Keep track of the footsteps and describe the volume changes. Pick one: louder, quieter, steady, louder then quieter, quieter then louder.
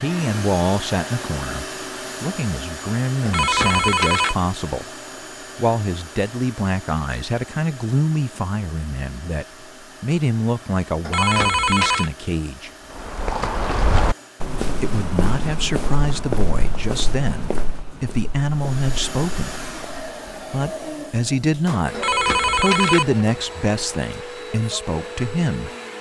quieter.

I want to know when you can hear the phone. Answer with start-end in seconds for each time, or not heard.
3.2-4.3, 11.1-12.1, 21.9-23.1.